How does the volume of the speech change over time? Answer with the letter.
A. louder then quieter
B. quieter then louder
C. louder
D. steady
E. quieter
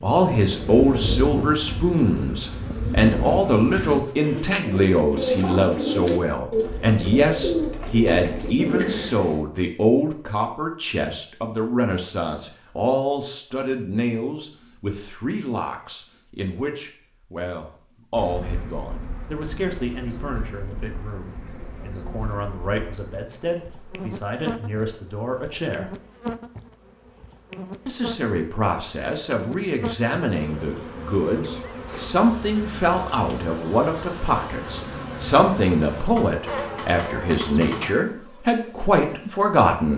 B.